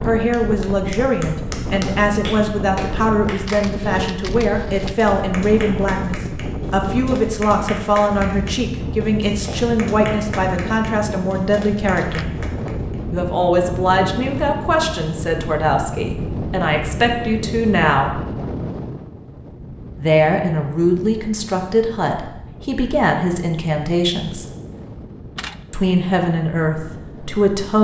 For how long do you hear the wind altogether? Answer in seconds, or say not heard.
28 s.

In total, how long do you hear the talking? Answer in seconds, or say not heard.
24 s.